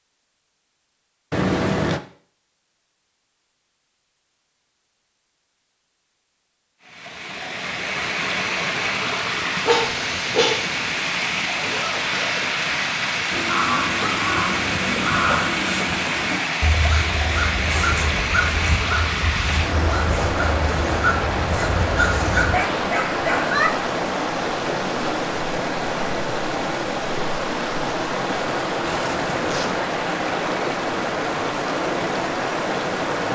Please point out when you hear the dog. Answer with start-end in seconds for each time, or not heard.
9.7-10.7, 22.4-23.4.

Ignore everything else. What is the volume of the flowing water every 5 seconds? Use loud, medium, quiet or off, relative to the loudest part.
off, loud, loud, loud, loud, loud, loud.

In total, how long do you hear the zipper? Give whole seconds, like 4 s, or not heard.
3 s.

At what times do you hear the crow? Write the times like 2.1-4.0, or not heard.
13.3-23.7.